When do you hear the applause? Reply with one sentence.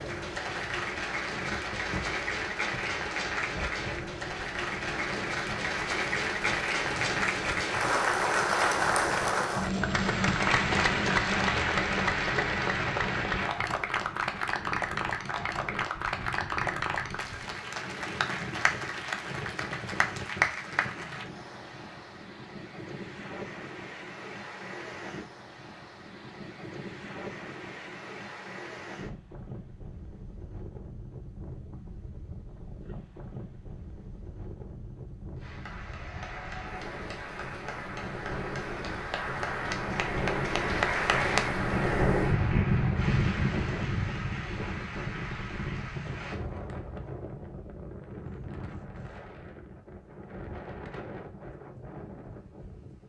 You can hear the applause from 0.0 to 21.3 s and from 35.4 to 46.4 s.